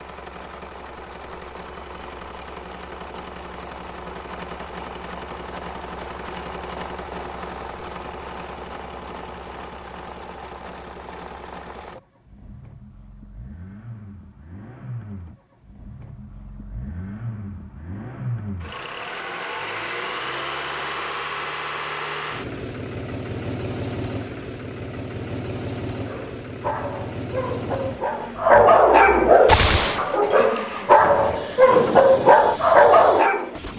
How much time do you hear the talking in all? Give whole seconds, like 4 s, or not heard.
not heard.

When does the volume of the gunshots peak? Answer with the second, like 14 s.
30 s.